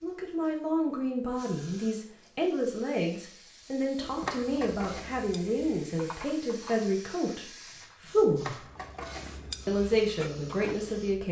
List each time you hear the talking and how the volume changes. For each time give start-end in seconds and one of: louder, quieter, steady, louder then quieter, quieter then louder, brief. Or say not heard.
0.0-8.6 steady
9.7-11.2 brief.